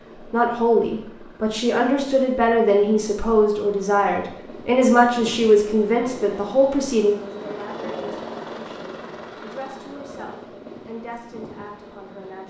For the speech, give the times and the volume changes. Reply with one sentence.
The speech can be heard from 0.3 to 12.4 s, getting quieter.